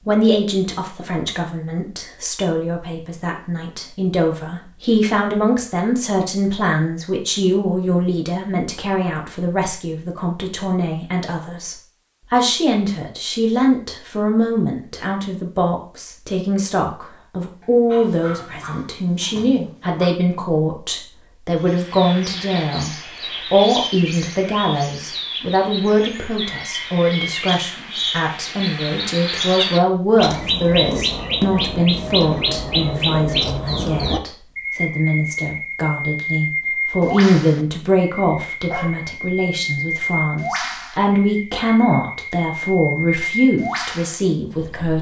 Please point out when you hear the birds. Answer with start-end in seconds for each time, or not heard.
21.6-44.9.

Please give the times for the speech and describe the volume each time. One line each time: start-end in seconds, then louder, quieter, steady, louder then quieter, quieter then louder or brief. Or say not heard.
0.1-44.9 steady.